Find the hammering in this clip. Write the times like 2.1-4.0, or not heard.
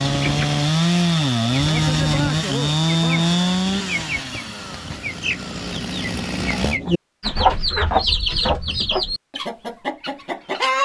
not heard.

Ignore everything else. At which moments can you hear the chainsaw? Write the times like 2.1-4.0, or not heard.
0.0-6.8.